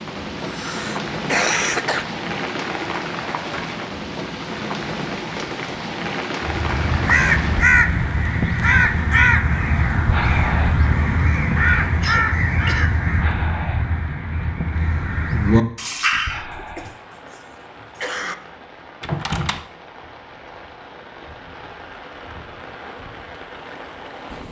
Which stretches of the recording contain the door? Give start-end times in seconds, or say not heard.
19.0-19.7.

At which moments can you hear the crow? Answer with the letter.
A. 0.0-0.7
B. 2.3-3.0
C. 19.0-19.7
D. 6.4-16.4
D.